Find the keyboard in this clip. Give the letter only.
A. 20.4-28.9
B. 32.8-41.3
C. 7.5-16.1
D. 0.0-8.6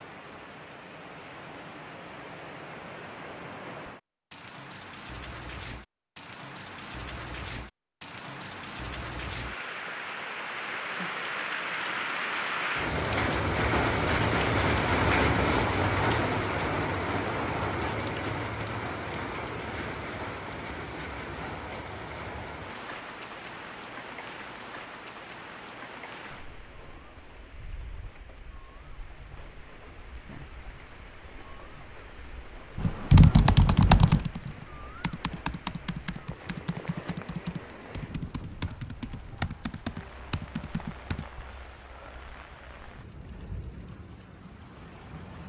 B.